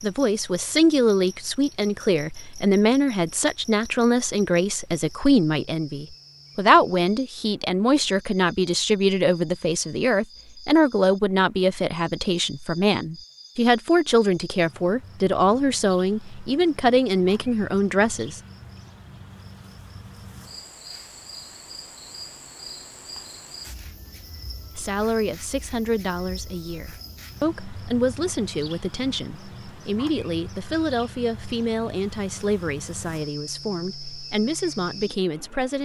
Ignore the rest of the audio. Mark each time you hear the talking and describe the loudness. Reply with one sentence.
The talking can be heard from 0.0 to 18.4 s, at a steady volume; and from 24.8 to 35.8 s, at a steady volume.